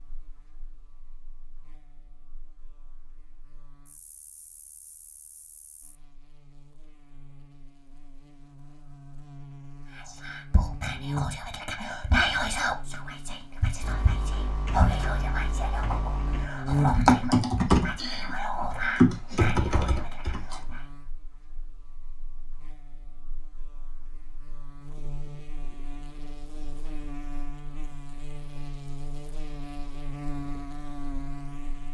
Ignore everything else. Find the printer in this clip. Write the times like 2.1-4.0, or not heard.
not heard.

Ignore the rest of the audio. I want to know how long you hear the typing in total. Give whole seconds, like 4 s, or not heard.
7 s.